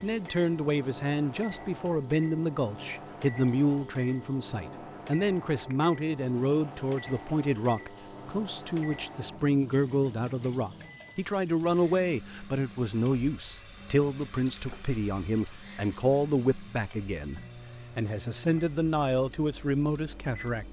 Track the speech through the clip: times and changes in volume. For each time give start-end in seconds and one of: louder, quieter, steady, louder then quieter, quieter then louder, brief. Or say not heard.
0.0-20.6 steady.